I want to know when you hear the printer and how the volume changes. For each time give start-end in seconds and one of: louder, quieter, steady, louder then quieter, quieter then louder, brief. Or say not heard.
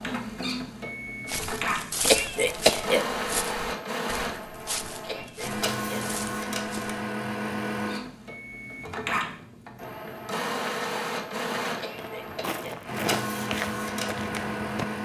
0.0-14.9 steady.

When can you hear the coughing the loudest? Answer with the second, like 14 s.
3 s.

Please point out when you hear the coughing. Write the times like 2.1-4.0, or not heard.
2.0-3.1, 5.0-6.1, 11.8-12.8.